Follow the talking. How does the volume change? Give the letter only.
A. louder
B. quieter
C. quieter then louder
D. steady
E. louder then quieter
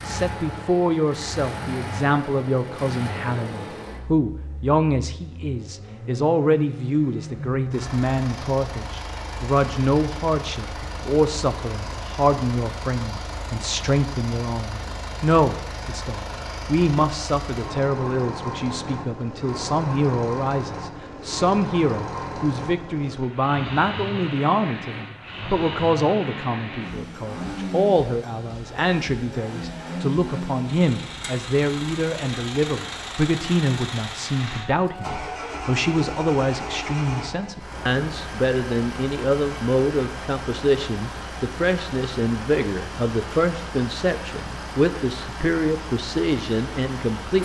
D.